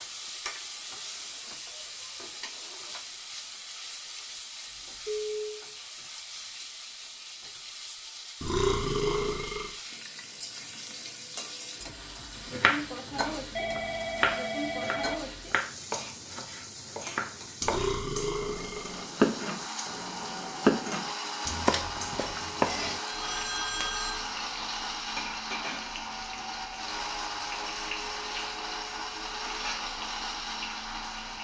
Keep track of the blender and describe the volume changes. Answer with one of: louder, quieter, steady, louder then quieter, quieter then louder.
steady.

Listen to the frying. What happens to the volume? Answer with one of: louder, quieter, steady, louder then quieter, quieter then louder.
steady.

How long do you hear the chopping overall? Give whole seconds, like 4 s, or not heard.
11 s.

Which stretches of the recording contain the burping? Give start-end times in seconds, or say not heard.
8.4-9.7, 17.6-19.1.